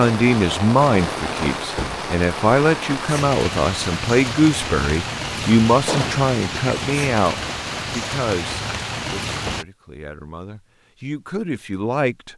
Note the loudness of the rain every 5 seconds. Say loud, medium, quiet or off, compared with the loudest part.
loud, loud, off.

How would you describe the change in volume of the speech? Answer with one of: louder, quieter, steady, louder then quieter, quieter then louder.
quieter.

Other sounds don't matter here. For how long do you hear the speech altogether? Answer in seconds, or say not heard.
12 s.